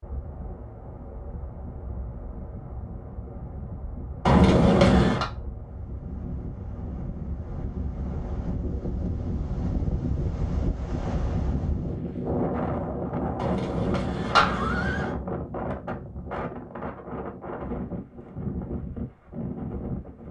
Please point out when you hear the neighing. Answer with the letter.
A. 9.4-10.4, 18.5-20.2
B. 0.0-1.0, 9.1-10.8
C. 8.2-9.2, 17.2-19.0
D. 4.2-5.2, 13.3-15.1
D.